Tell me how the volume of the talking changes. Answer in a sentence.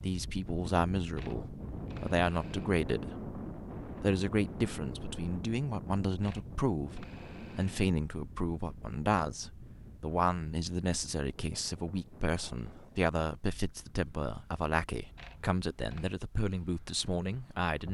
The volume of the talking stays about the same.